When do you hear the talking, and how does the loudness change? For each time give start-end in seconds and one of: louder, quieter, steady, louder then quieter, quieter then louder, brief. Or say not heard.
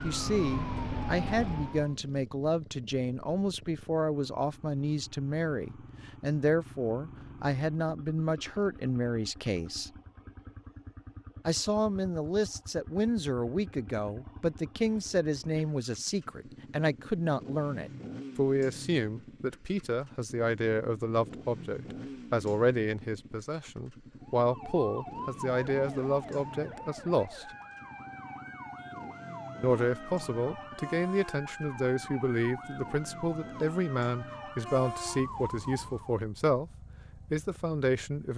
0.0-9.9 steady
11.4-27.4 steady
29.6-36.7 steady
37.3-38.3 brief.